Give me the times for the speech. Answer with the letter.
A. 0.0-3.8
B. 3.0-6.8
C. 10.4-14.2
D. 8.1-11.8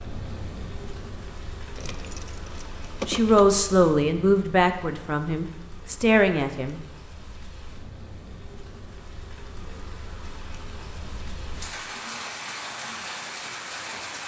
B.